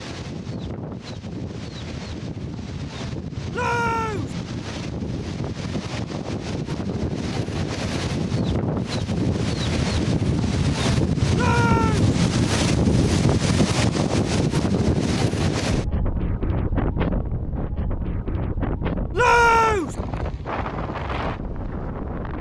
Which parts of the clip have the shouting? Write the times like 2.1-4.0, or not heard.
3.5-4.3, 11.3-12.2, 19.1-19.9.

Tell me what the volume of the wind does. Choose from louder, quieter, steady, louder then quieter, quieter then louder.
louder then quieter.